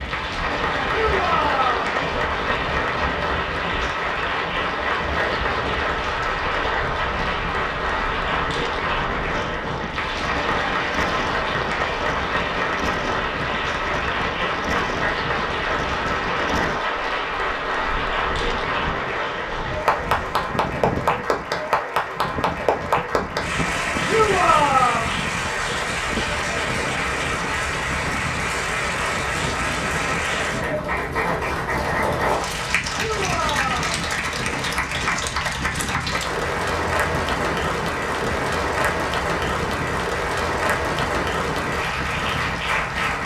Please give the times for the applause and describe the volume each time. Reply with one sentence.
The applause can be heard from 0.0 to 43.2 s, at a steady volume.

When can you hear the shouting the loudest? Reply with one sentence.
The loudest moment of the shouting is at 25 seconds.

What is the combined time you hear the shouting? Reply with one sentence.
The shouting can be heard for 3 seconds in total.